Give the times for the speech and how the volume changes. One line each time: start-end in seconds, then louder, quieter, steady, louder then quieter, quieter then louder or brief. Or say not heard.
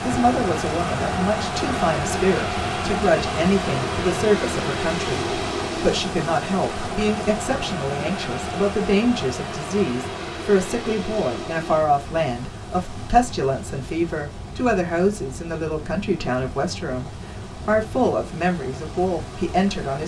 0.0-20.0 steady.